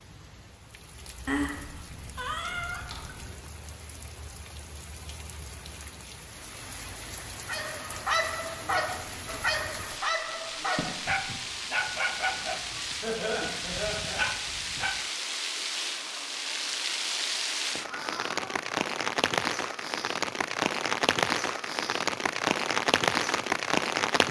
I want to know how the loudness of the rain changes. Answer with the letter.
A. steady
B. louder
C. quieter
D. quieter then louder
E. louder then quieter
B.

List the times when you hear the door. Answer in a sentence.
You can't hear the door here.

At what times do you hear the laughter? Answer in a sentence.
You can hear the laughter from 13.0 to 14.2 s.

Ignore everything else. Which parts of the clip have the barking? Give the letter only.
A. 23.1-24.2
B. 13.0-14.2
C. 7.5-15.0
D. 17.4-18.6
C.